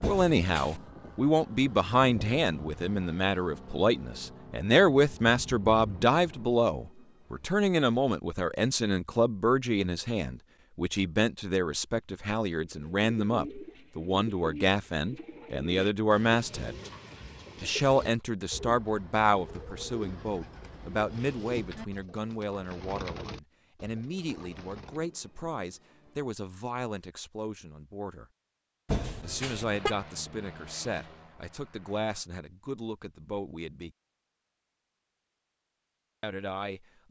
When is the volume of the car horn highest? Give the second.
29 s.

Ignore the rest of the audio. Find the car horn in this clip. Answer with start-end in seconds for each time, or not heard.
0.0-0.8, 28.9-29.9.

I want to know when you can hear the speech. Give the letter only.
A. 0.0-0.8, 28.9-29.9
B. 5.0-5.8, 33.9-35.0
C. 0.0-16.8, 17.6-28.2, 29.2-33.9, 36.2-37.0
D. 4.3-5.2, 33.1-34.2
C.